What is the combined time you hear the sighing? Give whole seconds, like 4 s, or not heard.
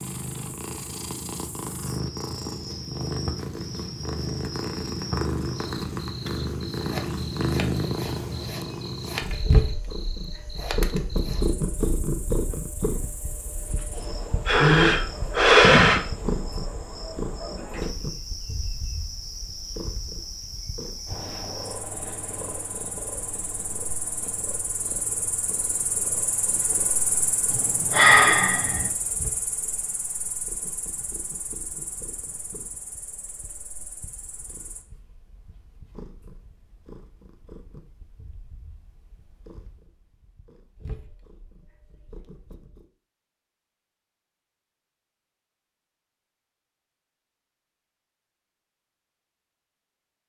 3 s.